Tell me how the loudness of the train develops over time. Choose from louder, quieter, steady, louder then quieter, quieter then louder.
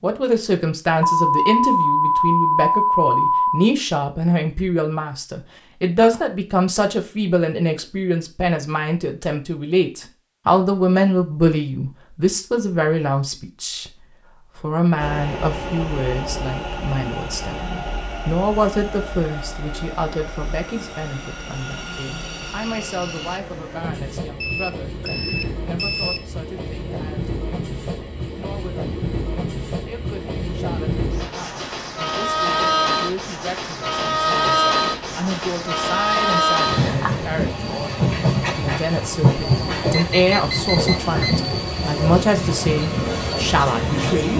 louder.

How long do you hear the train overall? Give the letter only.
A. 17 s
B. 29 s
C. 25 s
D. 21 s
B.